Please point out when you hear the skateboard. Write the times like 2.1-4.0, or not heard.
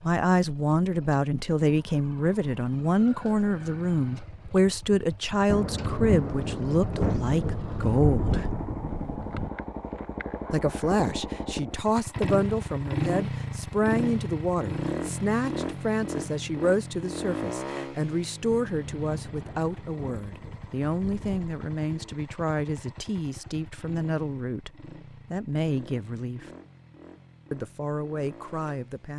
not heard.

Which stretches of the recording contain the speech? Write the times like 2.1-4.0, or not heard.
0.0-8.6, 10.5-26.5, 27.5-29.1.